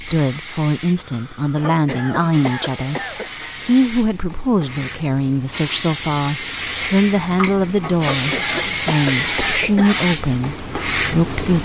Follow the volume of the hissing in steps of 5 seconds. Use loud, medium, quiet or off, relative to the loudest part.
medium, loud, loud.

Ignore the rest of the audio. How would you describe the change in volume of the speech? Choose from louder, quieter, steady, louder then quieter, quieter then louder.
steady.